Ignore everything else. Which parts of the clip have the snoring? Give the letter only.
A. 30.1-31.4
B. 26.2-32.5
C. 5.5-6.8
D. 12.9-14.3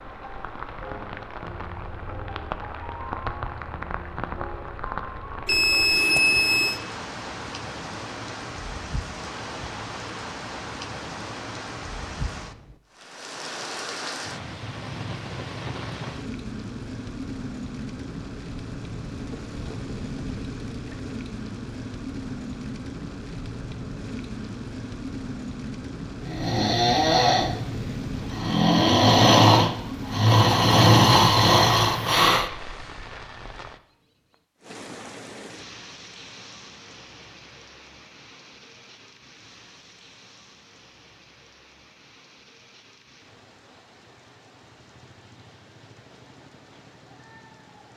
B.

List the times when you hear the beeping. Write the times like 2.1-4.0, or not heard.
5.5-6.8.